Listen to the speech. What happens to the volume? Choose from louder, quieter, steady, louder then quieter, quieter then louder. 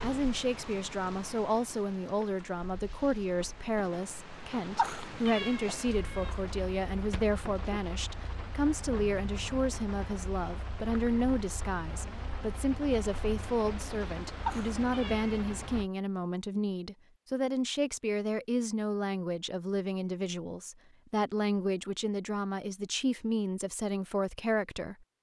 steady.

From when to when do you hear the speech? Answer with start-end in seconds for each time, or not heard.
0.0-24.9.